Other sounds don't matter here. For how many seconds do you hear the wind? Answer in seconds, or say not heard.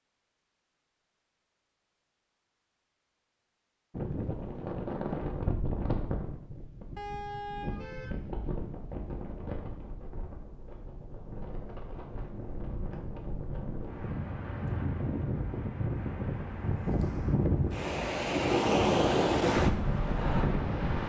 17 s.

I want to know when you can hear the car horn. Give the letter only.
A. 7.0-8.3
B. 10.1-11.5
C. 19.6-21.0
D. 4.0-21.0
A.